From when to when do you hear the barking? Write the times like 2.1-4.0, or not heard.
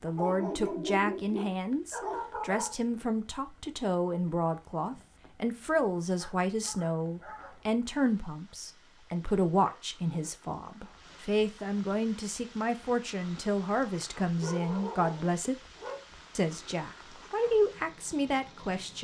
0.1-2.8, 6.2-7.7, 9.6-10.3, 14.4-16.1.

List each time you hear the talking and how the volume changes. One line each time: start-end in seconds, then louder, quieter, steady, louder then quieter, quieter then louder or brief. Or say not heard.
0.0-15.6 steady
16.4-18.9 brief.